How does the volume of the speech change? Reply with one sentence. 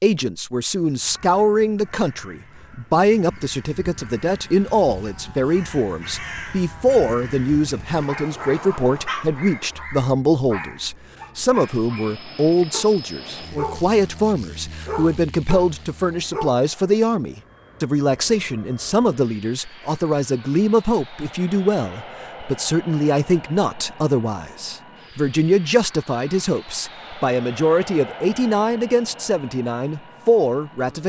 The volume of the speech stays about the same.